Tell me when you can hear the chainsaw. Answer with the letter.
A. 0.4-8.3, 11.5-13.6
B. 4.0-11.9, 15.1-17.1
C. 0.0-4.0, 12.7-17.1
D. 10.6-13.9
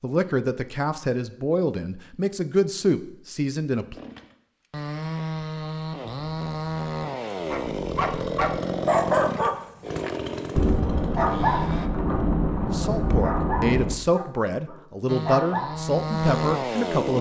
B.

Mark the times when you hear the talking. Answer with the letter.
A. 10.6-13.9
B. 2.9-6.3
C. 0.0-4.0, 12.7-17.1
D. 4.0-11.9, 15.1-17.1
C.